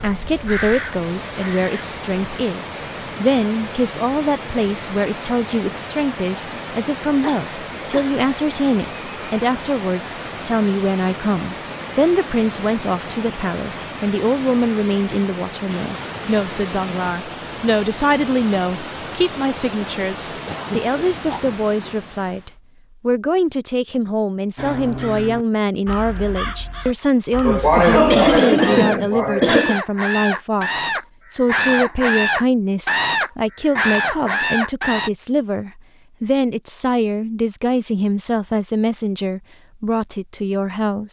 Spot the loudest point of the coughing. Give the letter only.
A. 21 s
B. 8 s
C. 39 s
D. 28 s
D.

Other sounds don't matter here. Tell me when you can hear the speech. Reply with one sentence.
The speech can be heard from 0.0 to 41.0 s.